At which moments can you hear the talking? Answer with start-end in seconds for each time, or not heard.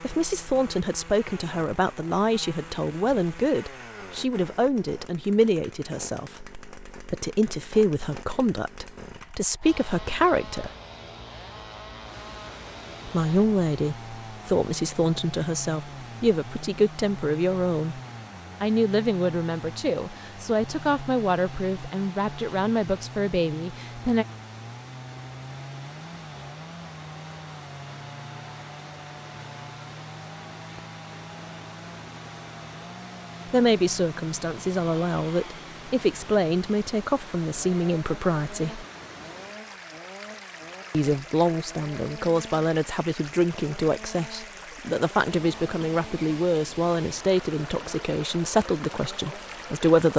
0.0-10.7, 13.1-18.0, 18.6-24.2, 33.5-38.9, 40.9-50.1.